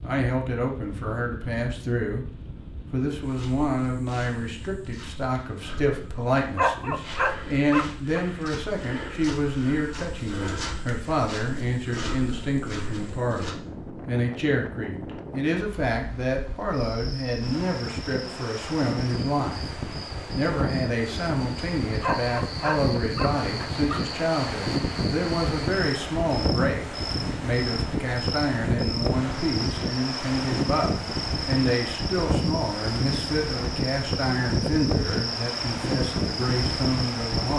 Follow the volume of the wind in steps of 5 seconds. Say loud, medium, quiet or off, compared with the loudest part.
quiet, quiet, medium, medium, loud, loud, loud, loud.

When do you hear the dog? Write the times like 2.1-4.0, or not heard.
6.5-8.2, 22.0-24.0.